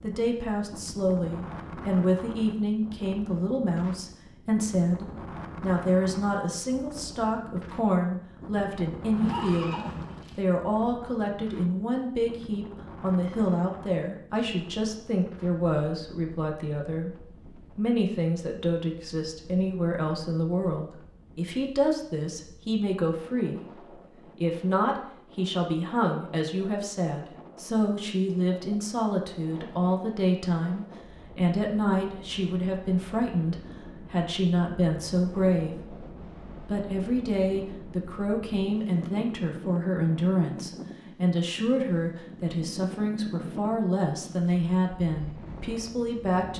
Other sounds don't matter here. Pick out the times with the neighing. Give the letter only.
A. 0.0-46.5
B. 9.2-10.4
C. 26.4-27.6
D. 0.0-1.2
B.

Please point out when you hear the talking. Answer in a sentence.
The talking can be heard from 0.0 to 46.5 s.